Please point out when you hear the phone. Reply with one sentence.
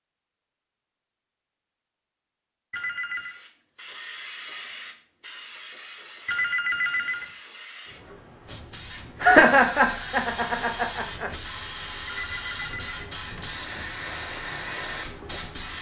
You can hear the phone from 2.7 to 3.4 s, from 6.2 to 7.2 s and from 12.2 to 13.9 s.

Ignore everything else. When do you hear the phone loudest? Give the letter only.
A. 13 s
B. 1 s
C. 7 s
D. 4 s
C.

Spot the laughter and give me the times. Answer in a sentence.
The laughter can be heard from 9.2 to 11.3 s.